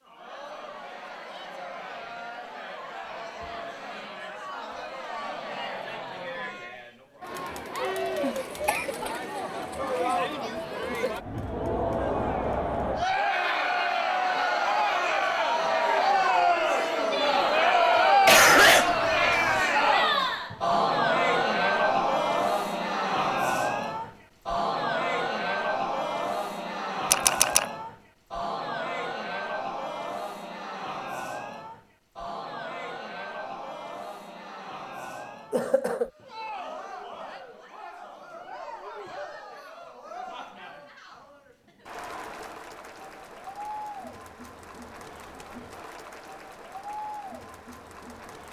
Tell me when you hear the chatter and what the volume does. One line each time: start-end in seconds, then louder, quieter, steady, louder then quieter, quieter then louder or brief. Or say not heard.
0.0-48.4 louder then quieter.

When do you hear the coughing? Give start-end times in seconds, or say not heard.
8.2-9.1, 18.2-19.6, 35.5-36.1.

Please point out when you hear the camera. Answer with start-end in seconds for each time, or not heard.
27.1-27.7.